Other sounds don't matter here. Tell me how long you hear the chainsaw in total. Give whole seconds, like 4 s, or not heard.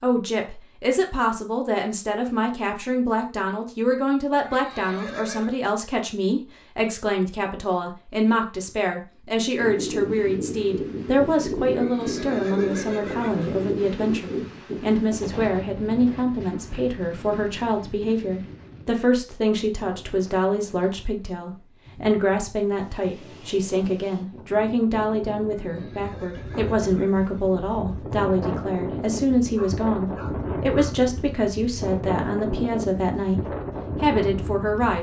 not heard.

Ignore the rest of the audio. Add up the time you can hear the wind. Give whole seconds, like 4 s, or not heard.
25 s.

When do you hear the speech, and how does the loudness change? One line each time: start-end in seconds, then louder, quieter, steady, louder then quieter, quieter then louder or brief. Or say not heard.
0.0-34.9 steady.